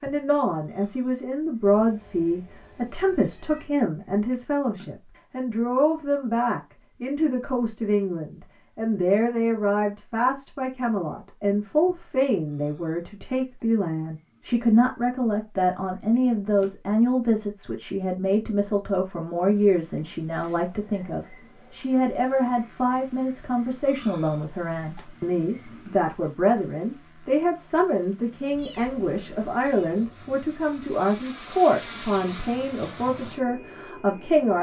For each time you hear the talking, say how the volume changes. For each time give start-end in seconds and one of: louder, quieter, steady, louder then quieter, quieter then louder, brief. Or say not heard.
0.0-34.5 steady.